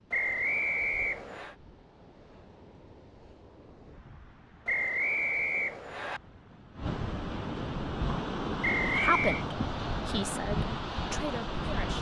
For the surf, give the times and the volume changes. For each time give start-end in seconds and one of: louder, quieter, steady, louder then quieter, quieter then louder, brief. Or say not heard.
0.0-11.9 louder.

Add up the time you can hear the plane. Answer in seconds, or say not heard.
not heard.